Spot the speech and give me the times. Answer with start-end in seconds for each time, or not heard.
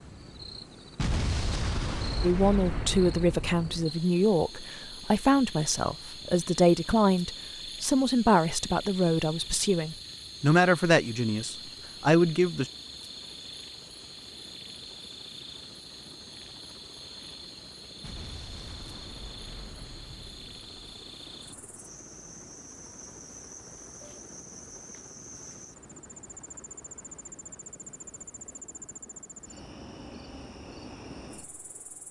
2.2-12.7.